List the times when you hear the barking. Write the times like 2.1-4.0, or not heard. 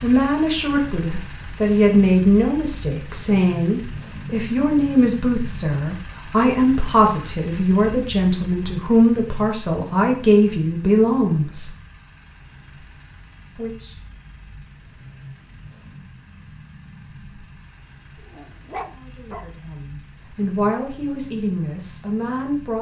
18.2-19.4.